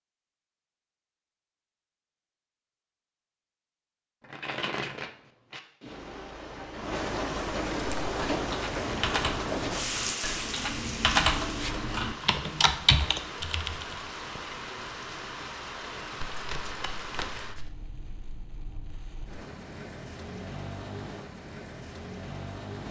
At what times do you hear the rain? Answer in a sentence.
You can hear the rain from 5.5 to 22.8 s.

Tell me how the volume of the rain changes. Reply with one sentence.
The loudness of the rain goes down.